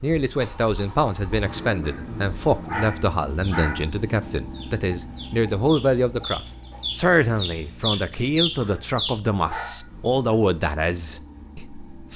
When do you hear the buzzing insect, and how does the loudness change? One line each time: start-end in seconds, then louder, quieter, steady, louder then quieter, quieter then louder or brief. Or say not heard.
not heard.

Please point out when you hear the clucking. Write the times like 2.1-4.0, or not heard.
3.2-9.2.